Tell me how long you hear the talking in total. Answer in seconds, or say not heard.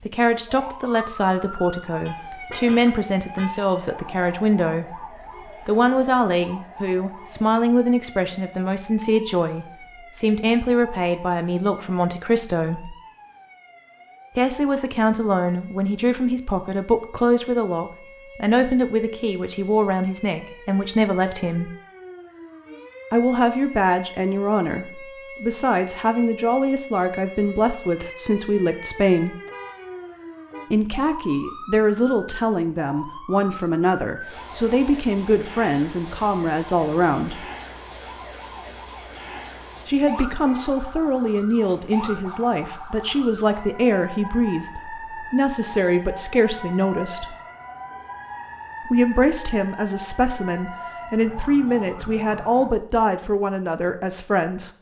47 s.